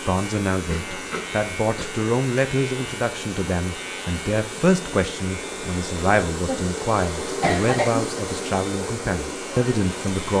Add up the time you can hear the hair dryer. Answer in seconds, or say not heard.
10 s.